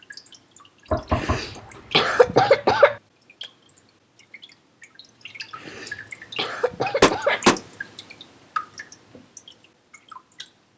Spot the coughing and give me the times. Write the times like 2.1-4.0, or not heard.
1.1-3.0, 5.5-7.4.